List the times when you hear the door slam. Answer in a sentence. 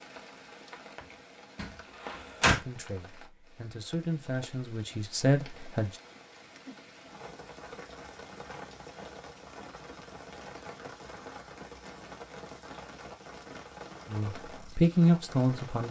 The door slam can be heard from 1.6 to 2.6 s.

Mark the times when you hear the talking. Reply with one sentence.
The talking can be heard from 2.4 to 6.0 s and from 14.1 to 15.8 s.